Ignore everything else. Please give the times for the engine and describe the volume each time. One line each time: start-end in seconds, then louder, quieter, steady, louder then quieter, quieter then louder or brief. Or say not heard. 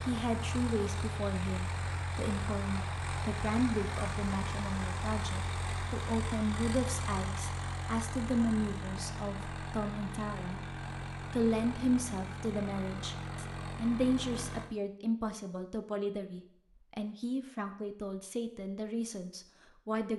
0.0-14.7 steady.